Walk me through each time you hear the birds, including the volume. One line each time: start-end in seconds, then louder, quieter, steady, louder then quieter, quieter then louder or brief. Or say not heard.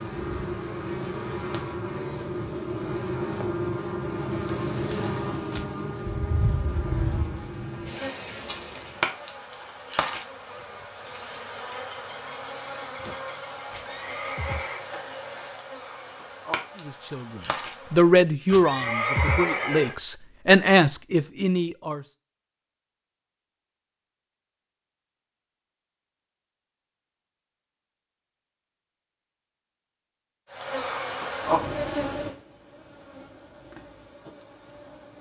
not heard.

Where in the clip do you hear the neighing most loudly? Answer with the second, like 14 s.
19 s.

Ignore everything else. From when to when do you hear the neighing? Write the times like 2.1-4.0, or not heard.
13.7-14.8, 18.5-19.9.